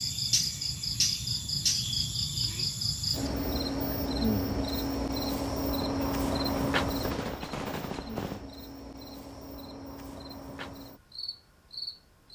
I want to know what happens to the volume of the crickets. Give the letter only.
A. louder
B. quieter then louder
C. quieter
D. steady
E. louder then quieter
C.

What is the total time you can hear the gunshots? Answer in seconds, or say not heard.
3 s.